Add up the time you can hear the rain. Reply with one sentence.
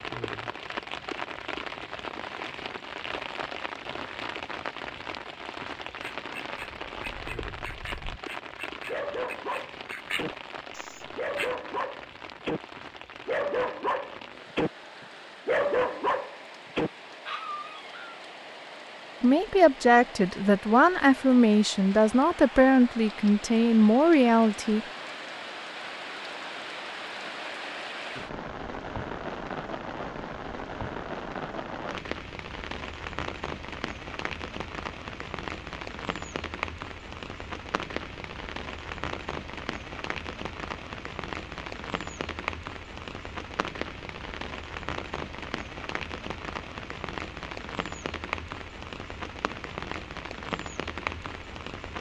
The rain can be heard for 52 seconds in total.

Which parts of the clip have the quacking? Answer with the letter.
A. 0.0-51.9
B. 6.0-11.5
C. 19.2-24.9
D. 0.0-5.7
B.